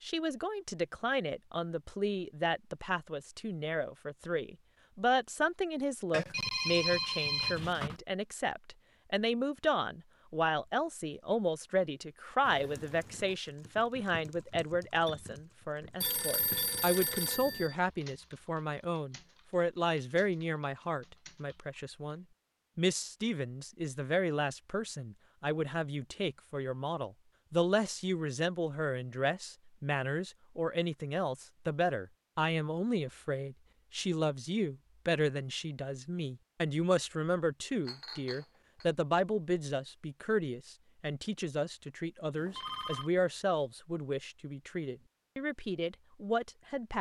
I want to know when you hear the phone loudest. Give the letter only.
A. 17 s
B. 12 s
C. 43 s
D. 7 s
D.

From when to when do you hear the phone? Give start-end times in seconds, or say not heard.
6.1-8.0, 16.0-17.8, 42.4-43.1.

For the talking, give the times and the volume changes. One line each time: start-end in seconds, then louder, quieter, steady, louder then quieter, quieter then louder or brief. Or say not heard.
0.0-46.9 steady.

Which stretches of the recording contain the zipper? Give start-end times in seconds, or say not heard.
not heard.